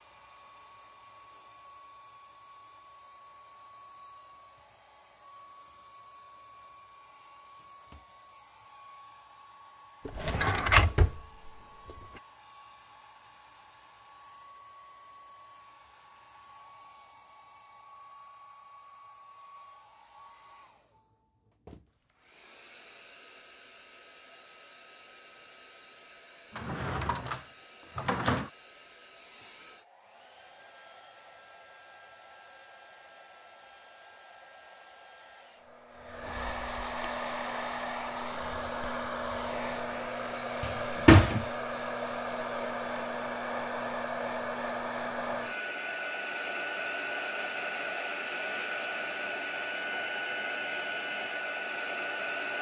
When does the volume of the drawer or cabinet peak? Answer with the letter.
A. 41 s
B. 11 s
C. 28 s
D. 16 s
A.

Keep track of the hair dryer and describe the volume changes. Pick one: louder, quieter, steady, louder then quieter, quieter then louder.
louder.